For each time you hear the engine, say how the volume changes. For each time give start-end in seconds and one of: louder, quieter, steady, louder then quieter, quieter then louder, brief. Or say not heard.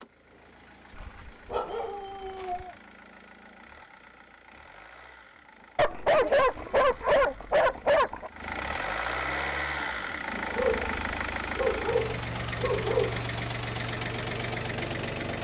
0.0-15.3 louder.